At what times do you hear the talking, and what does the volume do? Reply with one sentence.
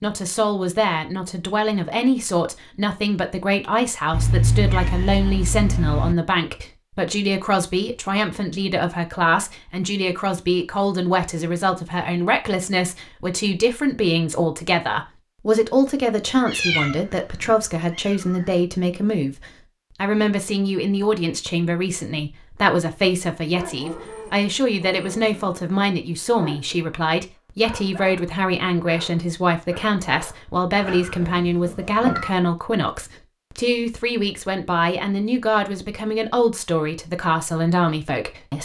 The talking can be heard from 0.0 to 38.6 s, at a steady volume.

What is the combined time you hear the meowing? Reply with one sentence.
You can hear the meowing for 6 seconds altogether.